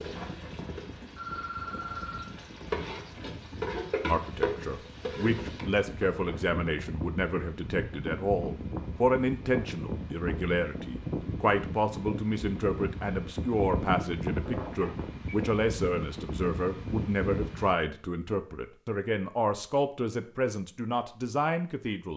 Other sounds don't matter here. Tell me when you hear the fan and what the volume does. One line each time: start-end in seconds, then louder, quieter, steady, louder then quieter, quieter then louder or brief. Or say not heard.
0.0-17.8 louder.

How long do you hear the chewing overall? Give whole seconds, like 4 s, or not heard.
not heard.